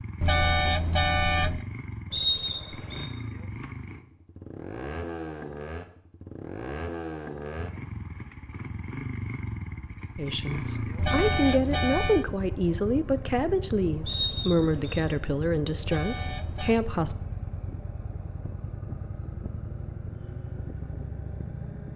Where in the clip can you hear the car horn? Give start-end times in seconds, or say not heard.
0.2-1.6, 10.9-12.2, 15.8-16.8.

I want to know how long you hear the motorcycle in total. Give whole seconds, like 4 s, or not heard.
22 s.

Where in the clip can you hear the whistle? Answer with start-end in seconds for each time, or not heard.
2.1-3.0, 14.1-15.0.